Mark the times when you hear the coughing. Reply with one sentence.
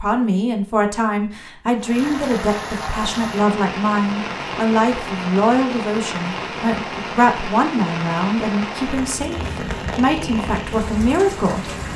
You can't hear the coughing here.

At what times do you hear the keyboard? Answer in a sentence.
The keyboard can't be heard in this clip.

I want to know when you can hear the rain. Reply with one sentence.
You can hear the rain from 1.8 to 11.9 s.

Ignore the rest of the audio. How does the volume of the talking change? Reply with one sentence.
The volume of the talking stays about the same.